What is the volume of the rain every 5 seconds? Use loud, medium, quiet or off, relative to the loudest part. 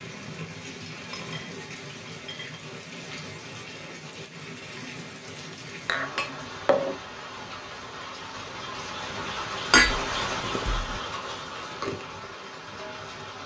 medium, loud, loud.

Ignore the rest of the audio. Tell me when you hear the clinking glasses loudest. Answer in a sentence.
The volume of the clinking glasses peaks at 10 seconds.